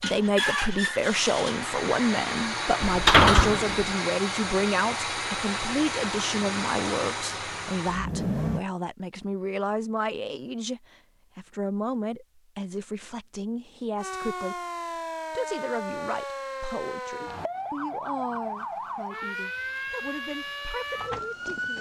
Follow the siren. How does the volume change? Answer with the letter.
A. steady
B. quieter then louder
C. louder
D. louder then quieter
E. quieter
A.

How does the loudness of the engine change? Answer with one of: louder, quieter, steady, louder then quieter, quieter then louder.
steady.